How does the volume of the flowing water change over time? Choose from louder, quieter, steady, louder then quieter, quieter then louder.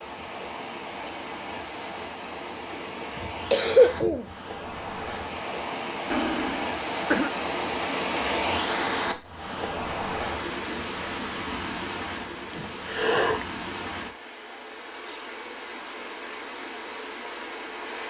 louder then quieter.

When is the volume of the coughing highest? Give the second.
4 s.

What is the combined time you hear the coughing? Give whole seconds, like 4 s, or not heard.
4 s.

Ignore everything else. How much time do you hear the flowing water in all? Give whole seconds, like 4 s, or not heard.
18 s.